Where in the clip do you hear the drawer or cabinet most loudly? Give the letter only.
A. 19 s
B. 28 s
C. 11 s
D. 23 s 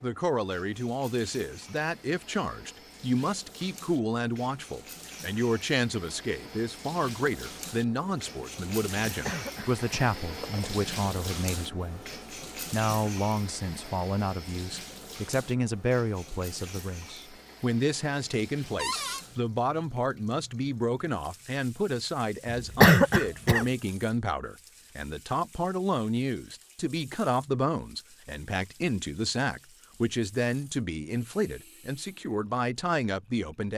A.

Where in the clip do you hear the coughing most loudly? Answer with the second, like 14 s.
23 s.